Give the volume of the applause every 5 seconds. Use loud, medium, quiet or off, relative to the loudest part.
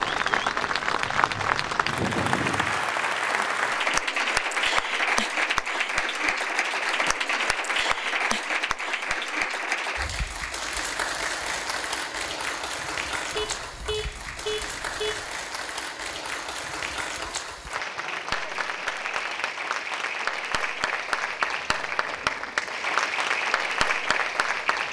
loud, loud, medium, medium, loud.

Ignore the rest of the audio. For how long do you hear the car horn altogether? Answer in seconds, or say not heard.
2 s.